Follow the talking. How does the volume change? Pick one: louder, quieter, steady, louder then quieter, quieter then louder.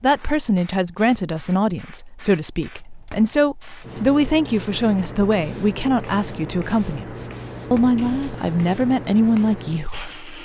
steady.